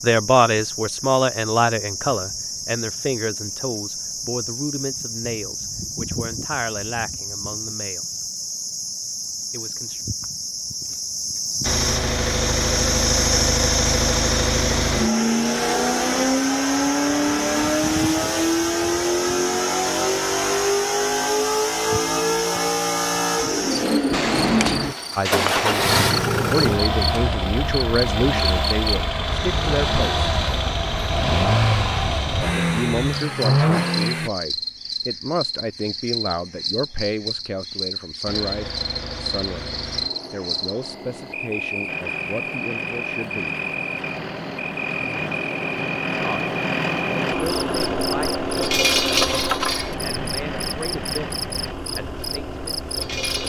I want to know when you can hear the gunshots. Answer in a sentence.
You can hear the gunshots from 24.1 to 25.9 s.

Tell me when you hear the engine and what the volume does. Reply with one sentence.
You can hear the engine from 11.6 to 34.3 s, at a steady volume; and from 38.2 to 53.4 s, getting louder then quieter.